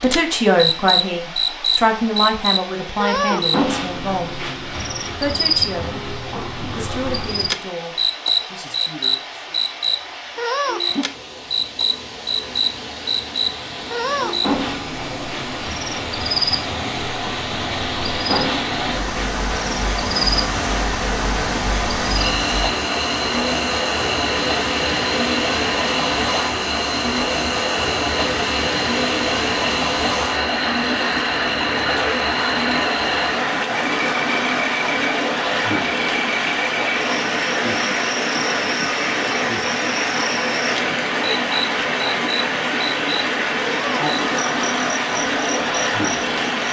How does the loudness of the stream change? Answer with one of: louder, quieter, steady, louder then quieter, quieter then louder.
louder.